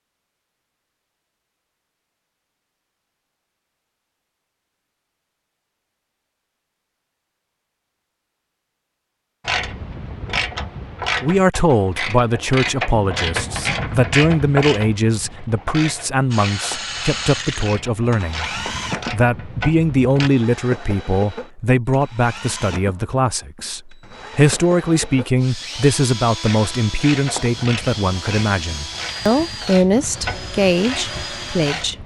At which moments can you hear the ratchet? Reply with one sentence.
You can hear the ratchet from 9.4 to 20.3 s and from 26.4 to 32.0 s.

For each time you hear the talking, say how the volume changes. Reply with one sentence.
The talking can be heard from 11.2 to 32.0 s, at a steady volume.